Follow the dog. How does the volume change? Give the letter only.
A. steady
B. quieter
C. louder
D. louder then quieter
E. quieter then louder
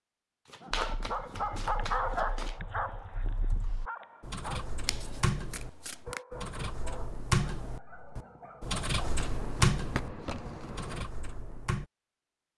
B.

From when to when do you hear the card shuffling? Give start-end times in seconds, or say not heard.
0.5-2.6, 4.8-6.2, 9.0-11.1.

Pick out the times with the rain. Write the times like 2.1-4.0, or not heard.
not heard.